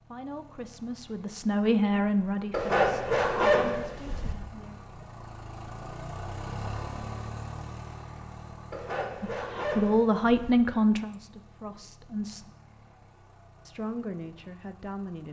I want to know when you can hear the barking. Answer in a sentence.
You can hear the barking from 2.5 to 4.3 s and from 8.7 to 10.6 s.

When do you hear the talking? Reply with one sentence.
You can hear the talking from 0.1 to 4.8 s, from 9.2 to 12.5 s and from 13.7 to 15.2 s.